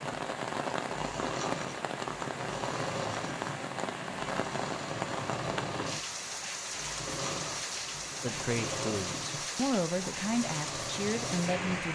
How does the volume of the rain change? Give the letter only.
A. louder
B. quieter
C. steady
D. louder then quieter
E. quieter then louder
C.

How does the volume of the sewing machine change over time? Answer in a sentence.
The volume of the sewing machine stays about the same.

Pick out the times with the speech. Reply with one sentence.
You can hear the speech from 8.2 to 11.9 s.